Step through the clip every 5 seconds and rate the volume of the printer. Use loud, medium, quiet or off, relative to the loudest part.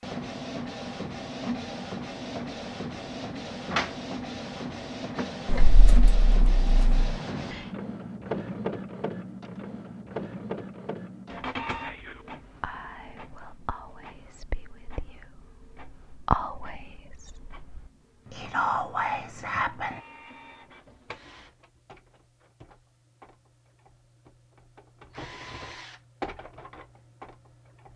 loud, loud, medium, quiet, quiet, medium.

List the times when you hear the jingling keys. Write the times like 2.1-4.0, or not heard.
5.5-7.0.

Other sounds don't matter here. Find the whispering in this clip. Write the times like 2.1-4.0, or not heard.
11.7-20.0.